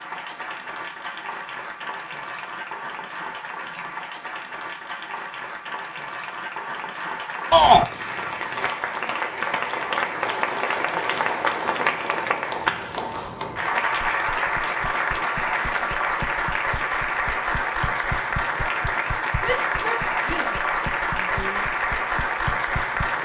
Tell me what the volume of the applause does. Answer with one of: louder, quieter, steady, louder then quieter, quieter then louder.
louder.